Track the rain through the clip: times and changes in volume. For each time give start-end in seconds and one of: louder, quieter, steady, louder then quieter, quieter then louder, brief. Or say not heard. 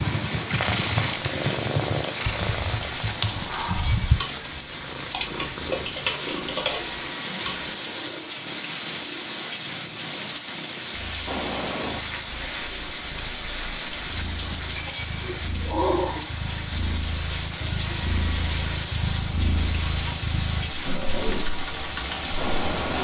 0.0-22.9 steady.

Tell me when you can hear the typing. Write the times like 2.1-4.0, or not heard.
0.0-7.7, 19.1-22.9.